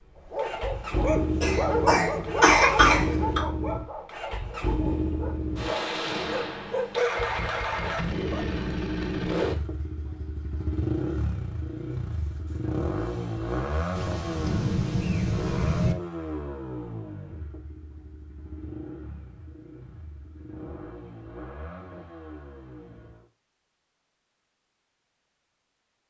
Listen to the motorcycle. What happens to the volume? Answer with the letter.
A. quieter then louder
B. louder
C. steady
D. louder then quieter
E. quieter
E.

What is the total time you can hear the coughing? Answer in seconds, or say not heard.
2 s.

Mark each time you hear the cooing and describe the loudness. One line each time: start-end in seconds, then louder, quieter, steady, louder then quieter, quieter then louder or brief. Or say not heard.
not heard.